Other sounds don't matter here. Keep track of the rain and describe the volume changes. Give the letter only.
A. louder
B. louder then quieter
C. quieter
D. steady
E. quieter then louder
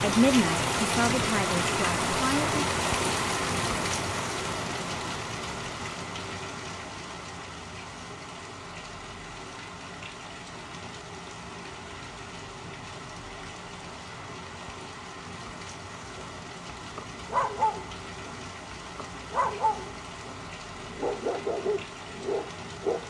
C.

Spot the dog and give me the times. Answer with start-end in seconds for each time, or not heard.
16.1-23.0.